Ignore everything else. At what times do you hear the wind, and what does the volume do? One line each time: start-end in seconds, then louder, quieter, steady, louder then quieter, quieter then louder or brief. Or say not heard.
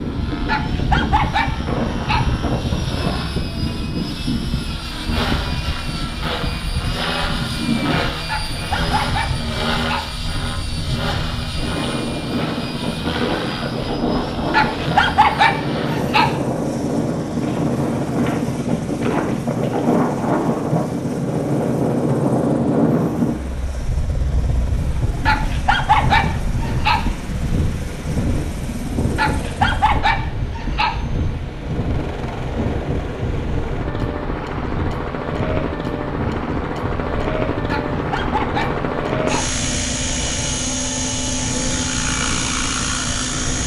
0.0-43.6 louder then quieter.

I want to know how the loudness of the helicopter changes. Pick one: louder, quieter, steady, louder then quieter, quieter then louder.
quieter then louder.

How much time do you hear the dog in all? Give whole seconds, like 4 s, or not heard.
11 s.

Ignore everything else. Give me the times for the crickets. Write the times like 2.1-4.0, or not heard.
not heard.